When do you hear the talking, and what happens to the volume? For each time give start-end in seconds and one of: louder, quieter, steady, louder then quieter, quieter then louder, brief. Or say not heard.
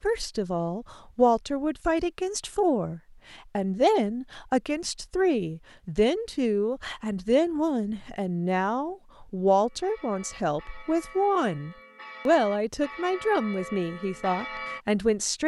0.0-15.4 steady.